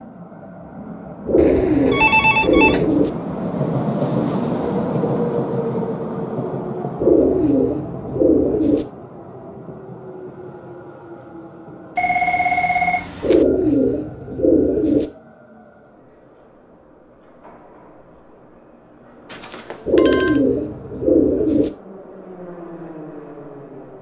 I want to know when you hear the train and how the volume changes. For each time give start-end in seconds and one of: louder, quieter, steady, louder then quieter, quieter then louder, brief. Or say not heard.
0.0-23.9 quieter then louder.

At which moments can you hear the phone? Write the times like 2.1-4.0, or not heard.
1.4-2.9, 11.9-13.4, 19.3-20.4.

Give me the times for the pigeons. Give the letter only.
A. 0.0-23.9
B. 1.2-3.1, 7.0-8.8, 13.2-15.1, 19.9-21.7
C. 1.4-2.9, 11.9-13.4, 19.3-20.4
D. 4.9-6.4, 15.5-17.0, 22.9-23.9
B.